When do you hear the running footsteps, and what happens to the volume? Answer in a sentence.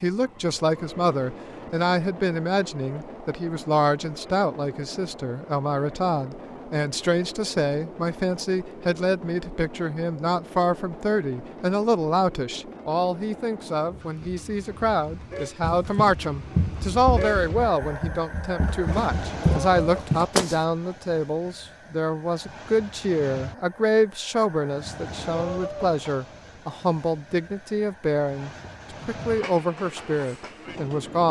You can hear the running footsteps from 15.6 to 20.6 s, getting quieter then louder.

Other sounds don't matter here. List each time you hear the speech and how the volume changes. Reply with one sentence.
You can hear the speech from 0.0 to 31.2 s, at a steady volume.